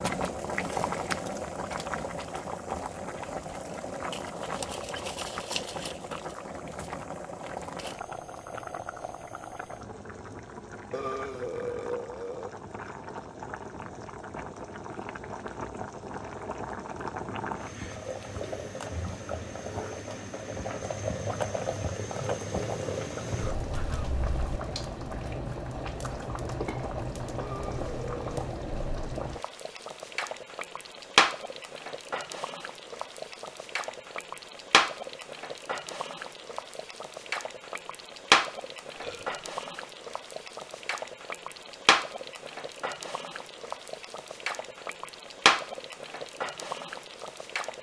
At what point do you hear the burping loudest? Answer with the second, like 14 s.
12 s.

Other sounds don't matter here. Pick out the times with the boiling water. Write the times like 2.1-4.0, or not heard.
0.0-47.7.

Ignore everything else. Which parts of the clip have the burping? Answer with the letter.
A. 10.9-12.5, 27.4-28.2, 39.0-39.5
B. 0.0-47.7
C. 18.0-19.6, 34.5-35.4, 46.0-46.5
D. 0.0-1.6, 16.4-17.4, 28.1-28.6
A.